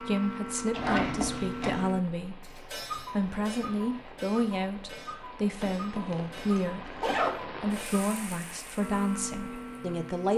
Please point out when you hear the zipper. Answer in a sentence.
You can hear the zipper from 0.7 to 1.9 s and from 5.6 to 7.5 s.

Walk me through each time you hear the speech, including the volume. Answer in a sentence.
The speech can be heard from 0.0 to 10.3 s, at a steady volume.